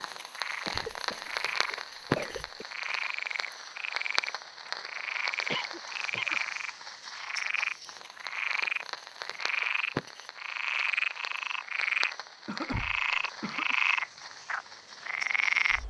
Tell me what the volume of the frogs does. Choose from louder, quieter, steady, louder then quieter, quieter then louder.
louder.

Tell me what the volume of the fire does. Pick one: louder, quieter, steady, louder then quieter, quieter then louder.
quieter.